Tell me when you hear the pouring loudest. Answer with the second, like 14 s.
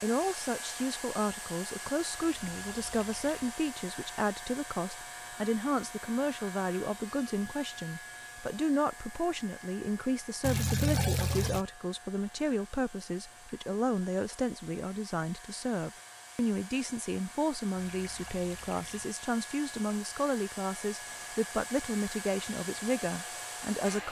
11 s.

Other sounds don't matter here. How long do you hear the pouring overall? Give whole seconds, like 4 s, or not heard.
4 s.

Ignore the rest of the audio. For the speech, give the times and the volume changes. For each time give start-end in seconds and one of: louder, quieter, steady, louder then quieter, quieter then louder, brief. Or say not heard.
0.0-24.0 steady.